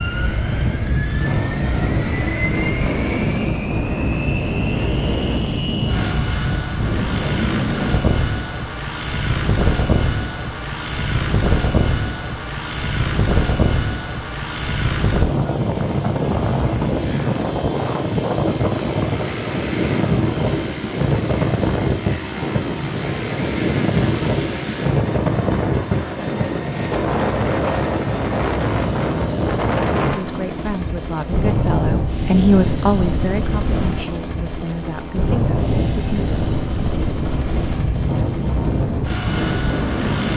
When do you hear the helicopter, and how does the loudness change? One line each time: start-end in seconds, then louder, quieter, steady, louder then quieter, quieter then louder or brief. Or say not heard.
0.0-40.3 steady.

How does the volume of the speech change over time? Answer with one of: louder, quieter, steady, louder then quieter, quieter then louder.
louder then quieter.